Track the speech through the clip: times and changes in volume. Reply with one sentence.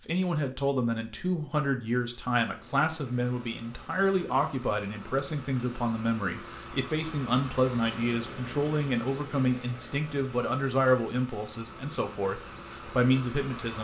The speech can be heard from 0.0 to 13.7 s, at a steady volume.